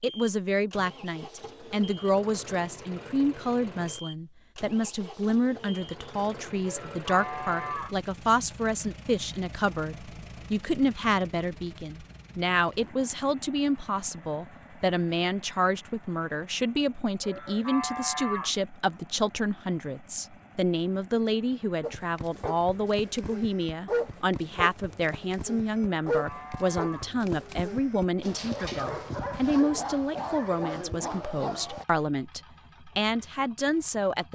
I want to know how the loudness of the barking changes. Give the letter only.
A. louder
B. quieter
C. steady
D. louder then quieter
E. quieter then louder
E.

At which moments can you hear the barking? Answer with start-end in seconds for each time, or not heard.
21.8-31.9.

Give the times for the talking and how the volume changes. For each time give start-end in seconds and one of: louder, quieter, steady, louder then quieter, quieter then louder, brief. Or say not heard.
0.0-34.3 steady.